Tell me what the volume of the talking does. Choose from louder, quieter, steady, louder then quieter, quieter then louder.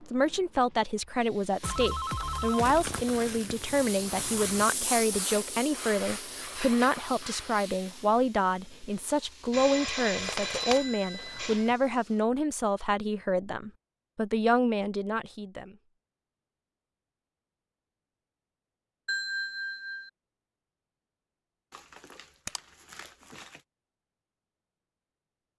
steady.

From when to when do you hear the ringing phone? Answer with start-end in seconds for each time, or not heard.
1.6-3.0, 9.5-11.8, 19.1-20.1.